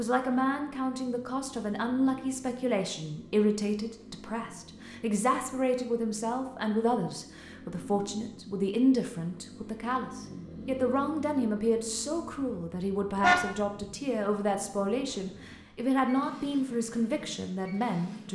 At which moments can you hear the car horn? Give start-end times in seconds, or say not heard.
13.2-13.8.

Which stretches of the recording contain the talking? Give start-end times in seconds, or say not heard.
0.0-18.3.